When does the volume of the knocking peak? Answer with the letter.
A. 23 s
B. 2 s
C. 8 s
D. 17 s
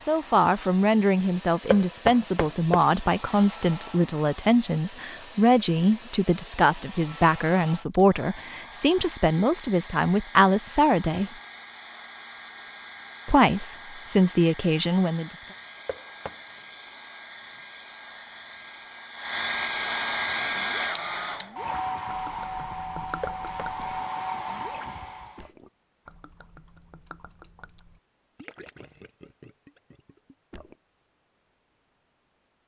B.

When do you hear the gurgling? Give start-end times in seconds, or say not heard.
20.6-30.8.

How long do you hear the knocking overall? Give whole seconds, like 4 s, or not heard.
2 s.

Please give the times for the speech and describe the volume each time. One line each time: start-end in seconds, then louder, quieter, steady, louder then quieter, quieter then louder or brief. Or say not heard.
0.1-11.3 steady
13.2-15.4 brief.